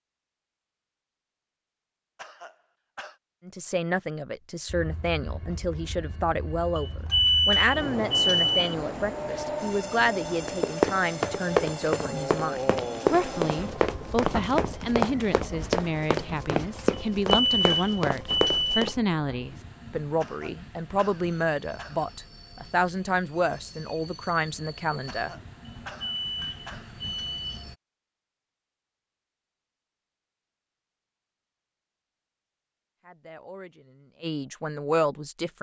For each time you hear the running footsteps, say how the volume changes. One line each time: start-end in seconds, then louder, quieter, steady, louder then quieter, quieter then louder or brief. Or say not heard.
10.4-18.9 steady.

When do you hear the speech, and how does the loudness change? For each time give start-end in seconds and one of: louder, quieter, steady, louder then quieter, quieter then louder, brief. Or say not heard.
3.5-25.3 steady
33.0-35.5 brief.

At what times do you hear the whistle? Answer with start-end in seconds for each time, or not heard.
not heard.